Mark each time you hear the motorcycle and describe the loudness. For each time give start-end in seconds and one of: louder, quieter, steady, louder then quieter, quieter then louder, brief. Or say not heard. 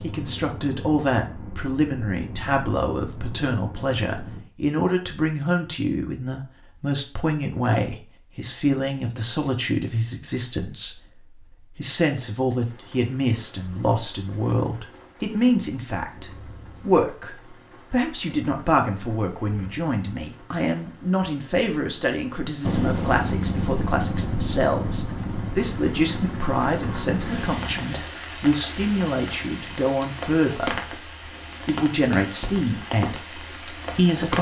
0.0-4.5 steady
22.6-27.9 quieter.